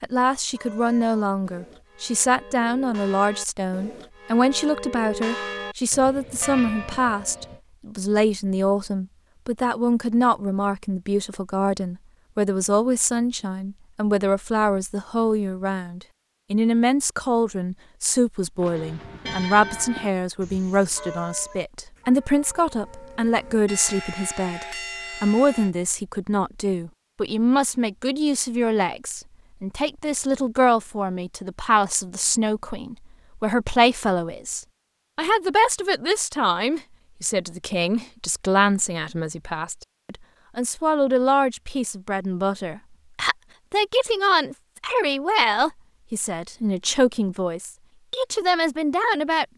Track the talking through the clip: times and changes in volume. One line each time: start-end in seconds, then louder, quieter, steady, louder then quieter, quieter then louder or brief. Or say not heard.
0.0-49.5 steady.